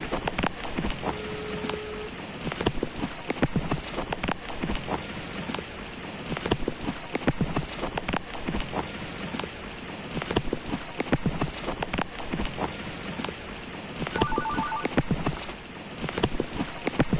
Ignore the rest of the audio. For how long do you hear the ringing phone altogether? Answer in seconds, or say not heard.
2 s.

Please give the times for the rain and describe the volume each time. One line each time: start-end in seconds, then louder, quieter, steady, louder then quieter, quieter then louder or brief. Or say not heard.
0.0-17.1 steady.